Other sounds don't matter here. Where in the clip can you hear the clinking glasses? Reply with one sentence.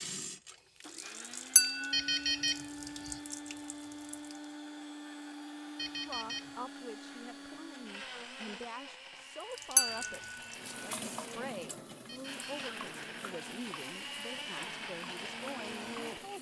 The clinking glasses can be heard from 1.6 to 2.1 s and from 9.8 to 10.2 s.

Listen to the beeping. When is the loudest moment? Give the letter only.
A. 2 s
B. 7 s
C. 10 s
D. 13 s
A.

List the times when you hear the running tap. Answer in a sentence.
You can hear the running tap from 0.0 to 4.5 s and from 9.4 to 16.3 s.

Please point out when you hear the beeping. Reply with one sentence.
The beeping can be heard from 1.9 to 3.2 s, from 5.8 to 6.5 s and from 12.1 to 12.5 s.